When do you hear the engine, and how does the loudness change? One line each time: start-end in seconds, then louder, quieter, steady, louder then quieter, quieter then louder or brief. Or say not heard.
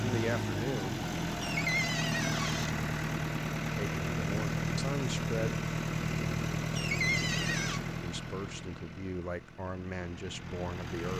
0.0-11.1 quieter.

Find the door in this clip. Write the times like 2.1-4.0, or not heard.
1.4-2.8, 6.8-7.8.